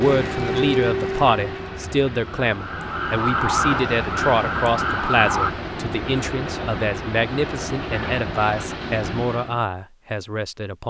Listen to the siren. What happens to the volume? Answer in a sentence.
The volume of the siren goes down, then up.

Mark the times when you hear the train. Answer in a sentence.
The train can be heard from 0.0 to 9.7 s.